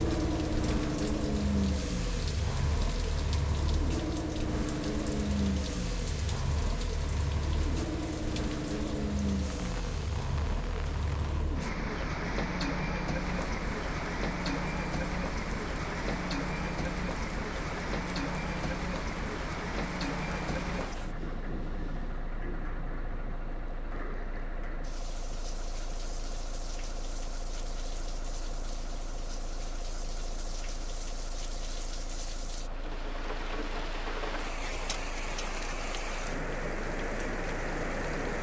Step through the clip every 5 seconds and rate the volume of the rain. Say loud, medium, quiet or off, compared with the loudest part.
medium, medium, medium, medium, medium, quiet, medium, loud.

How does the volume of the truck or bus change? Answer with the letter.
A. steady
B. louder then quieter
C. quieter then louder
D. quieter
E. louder
D.